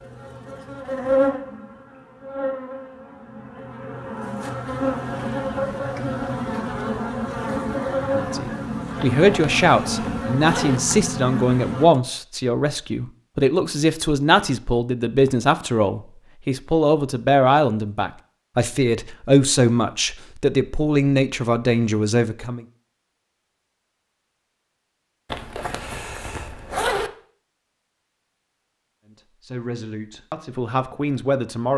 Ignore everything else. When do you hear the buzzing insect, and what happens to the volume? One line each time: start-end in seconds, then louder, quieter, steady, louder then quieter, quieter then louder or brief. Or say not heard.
0.0-11.8 quieter then louder.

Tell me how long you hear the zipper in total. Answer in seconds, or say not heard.
4 s.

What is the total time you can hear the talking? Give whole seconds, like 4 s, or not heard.
17 s.